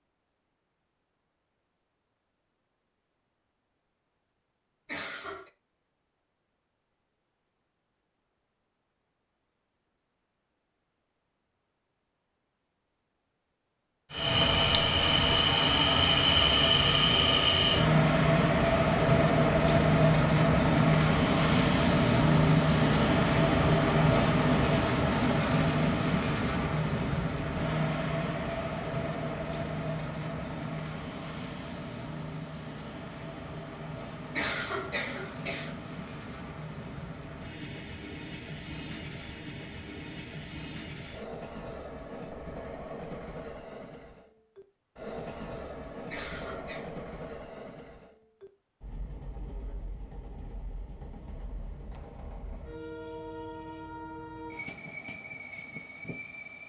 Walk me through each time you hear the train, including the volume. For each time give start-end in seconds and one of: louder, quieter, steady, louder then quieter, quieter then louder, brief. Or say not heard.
14.1-56.6 quieter.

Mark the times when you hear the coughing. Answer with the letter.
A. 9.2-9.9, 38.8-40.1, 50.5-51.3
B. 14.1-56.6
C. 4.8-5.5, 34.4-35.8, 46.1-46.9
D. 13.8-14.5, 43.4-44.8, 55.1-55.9
C.